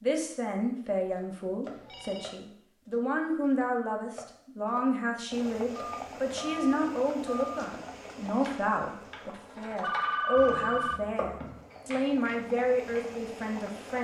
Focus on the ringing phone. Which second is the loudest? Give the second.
10 s.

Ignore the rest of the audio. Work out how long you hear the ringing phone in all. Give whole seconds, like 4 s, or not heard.
4 s.